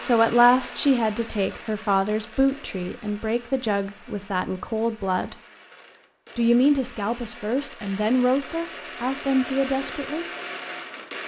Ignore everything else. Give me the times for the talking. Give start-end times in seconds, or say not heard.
0.0-5.3, 6.3-10.2.